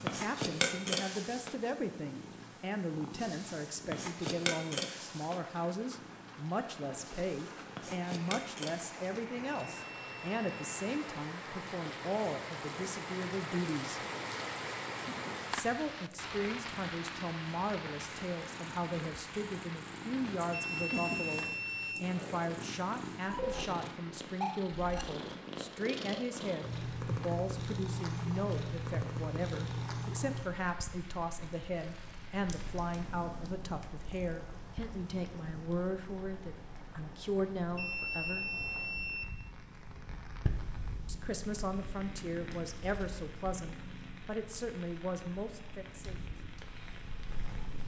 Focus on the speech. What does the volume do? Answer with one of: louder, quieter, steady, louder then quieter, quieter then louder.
steady.